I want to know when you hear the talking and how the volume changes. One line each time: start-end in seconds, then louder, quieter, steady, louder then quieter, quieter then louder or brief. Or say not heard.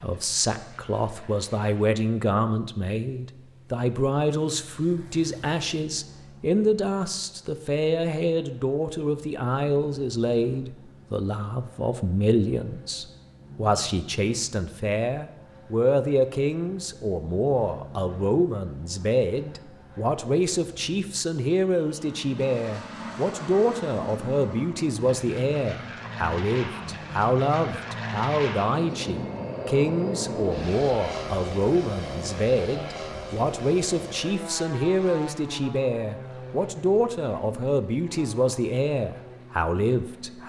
0.0-40.4 steady.